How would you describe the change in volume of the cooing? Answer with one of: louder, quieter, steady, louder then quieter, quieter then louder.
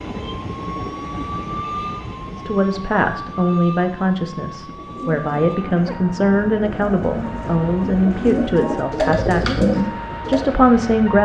louder.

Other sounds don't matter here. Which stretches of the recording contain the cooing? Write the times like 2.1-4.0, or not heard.
4.8-10.6.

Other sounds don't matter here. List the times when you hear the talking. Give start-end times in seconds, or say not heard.
2.3-11.2.